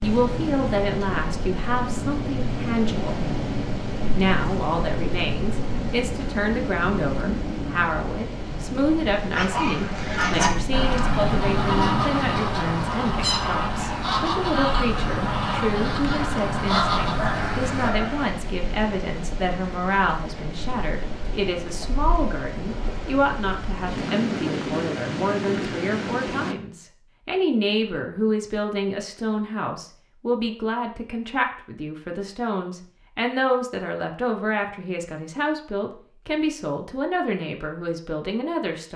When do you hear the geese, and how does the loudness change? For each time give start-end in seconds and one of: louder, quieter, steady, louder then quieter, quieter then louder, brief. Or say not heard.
9.3-17.9 steady.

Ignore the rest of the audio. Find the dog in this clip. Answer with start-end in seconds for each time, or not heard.
16.7-18.4.